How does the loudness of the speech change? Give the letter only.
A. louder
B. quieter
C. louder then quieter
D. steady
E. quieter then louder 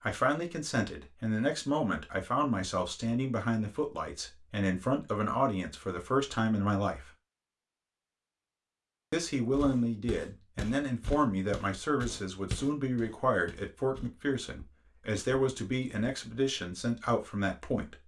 D.